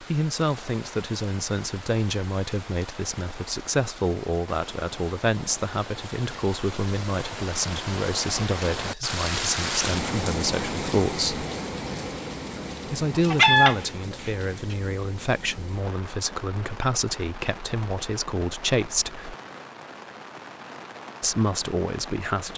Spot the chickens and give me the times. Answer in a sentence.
The chickens can be heard from 13.2 to 14.8 s.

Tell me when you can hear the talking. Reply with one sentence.
The talking can be heard from 0.0 to 11.4 s, from 12.8 to 19.4 s and from 21.2 to 22.5 s.